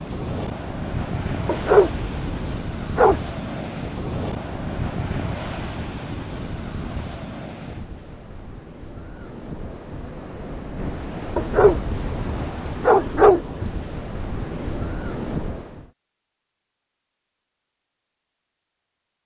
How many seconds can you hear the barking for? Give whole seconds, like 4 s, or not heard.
4 s.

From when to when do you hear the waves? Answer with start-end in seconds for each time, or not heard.
0.0-15.9.